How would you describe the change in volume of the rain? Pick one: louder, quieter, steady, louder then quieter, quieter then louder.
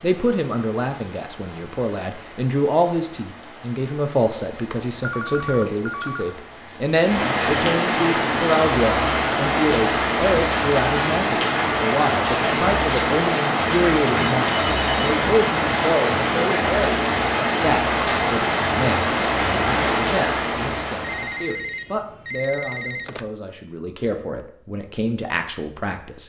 louder.